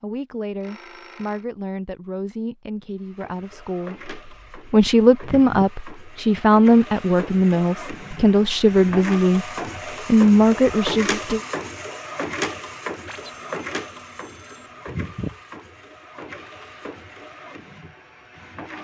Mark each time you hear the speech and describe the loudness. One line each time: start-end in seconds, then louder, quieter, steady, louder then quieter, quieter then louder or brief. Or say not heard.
0.0-11.4 louder.